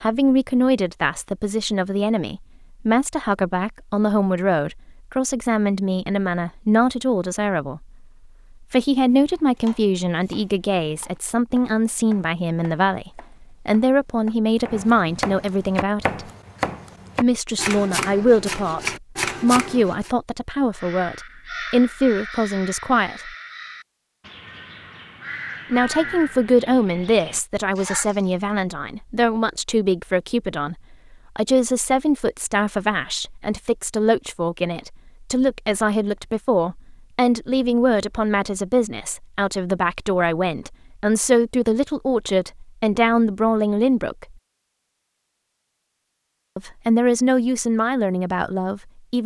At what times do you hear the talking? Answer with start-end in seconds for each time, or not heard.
0.0-7.8, 8.6-16.2, 17.2-23.3, 25.7-44.2, 46.5-49.2.